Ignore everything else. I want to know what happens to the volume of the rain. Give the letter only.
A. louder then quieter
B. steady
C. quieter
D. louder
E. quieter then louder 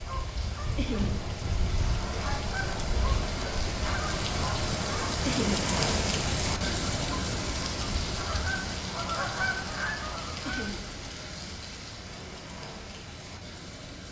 A.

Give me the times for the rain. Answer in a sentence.
The rain can be heard from 0.0 to 14.0 s.